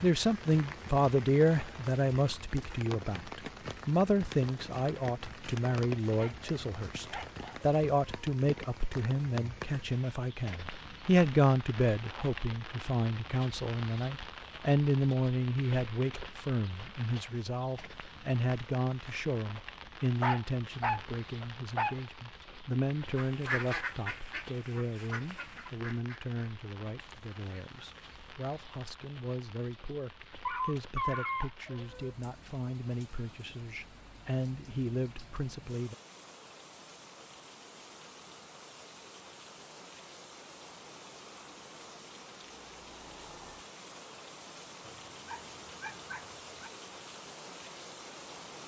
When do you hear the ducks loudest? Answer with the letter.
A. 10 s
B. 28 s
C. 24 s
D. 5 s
C.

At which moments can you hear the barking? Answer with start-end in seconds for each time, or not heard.
6.1-7.6, 20.2-21.9, 30.4-32.1, 44.8-46.7.